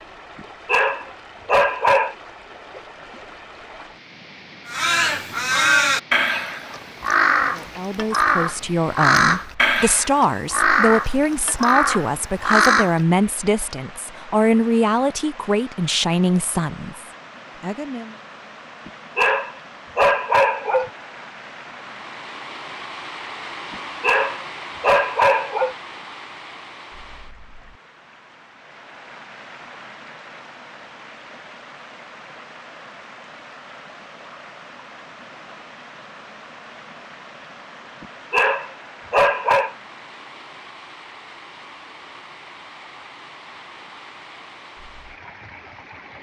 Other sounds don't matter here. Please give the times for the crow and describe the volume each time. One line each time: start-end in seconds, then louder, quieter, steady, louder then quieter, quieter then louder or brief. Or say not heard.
4.7-13.0 steady.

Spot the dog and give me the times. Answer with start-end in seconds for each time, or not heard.
0.3-2.1, 18.9-20.9, 23.7-25.8, 38.0-39.8.